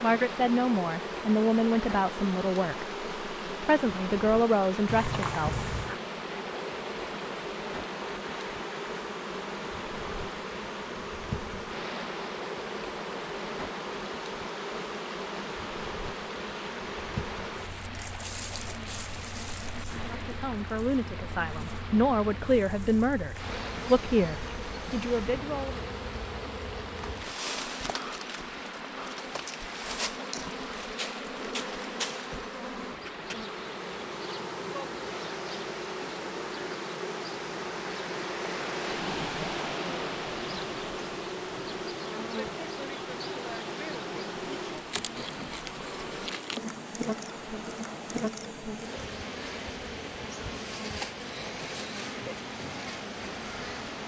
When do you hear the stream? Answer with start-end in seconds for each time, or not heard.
0.0-54.0.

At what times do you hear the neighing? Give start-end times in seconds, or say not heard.
4.8-6.0.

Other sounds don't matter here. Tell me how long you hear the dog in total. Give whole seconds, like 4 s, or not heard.
not heard.